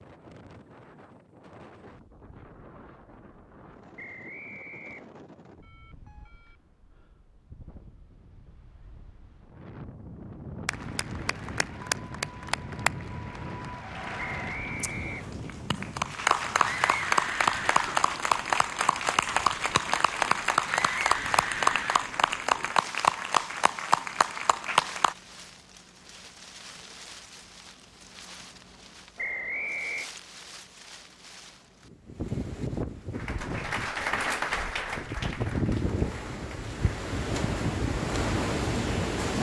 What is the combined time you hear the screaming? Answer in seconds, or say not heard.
3 s.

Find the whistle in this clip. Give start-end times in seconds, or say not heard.
4.0-5.2, 14.2-15.3, 29.1-30.1.